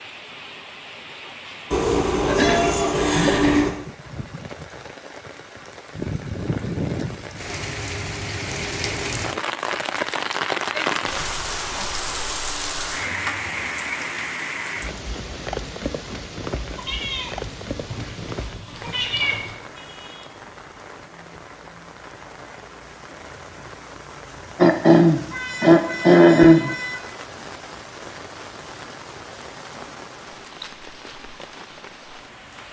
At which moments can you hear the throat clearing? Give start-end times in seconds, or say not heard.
2.2-3.6, 24.6-26.7.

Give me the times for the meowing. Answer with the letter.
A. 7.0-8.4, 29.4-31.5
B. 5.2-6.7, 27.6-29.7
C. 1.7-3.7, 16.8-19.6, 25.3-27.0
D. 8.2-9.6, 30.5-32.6
C.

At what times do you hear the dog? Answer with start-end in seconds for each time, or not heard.
not heard.